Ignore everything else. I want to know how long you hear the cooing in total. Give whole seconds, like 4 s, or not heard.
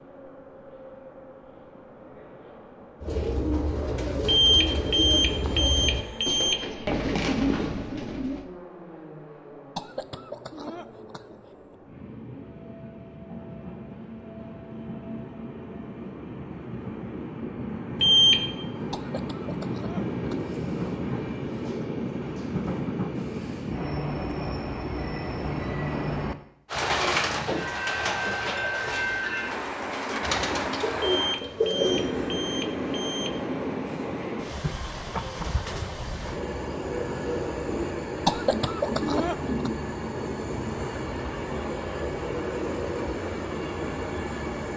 11 s.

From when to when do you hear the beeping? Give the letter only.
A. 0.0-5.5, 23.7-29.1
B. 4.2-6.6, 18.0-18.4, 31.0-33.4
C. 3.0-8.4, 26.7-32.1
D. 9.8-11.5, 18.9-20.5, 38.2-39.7
B.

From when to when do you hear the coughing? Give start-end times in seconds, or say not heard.
9.8-11.5, 18.9-20.5, 38.2-39.7.